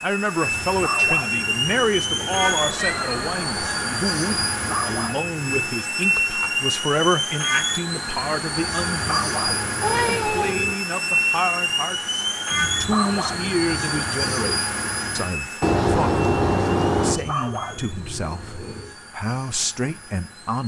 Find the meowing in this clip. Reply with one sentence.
You can hear the meowing from 2.4 to 3.8 s, from 9.8 to 10.7 s and from 15.6 to 17.2 s.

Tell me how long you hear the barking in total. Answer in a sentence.
You can hear the barking for 9 seconds altogether.